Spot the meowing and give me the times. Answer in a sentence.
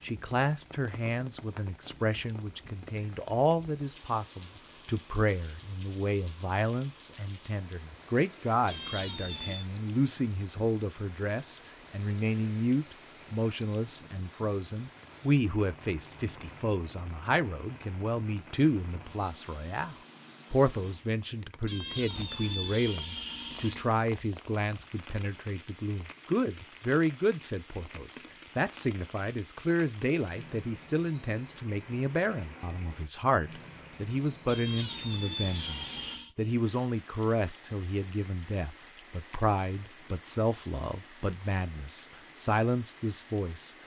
The meowing can be heard from 8.7 to 9.7 s, from 21.6 to 23.9 s and from 34.5 to 36.3 s.